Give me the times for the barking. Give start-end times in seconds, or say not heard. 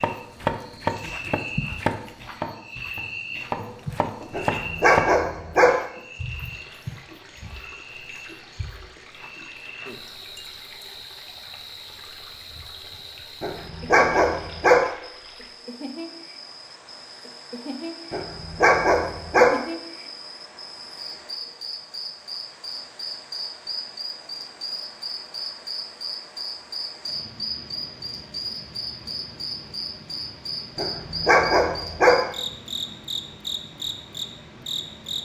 4.3-5.7, 13.4-14.8, 18.1-19.5, 30.8-32.1.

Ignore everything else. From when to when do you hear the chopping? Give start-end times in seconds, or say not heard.
0.0-5.0.